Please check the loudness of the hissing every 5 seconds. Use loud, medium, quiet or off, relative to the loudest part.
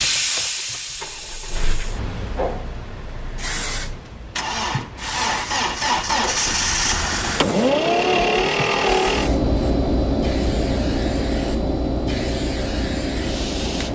loud, medium, medium.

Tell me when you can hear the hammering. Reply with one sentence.
You can't hear the hammering here.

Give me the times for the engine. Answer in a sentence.
The engine can be heard from 0.0 to 13.9 s.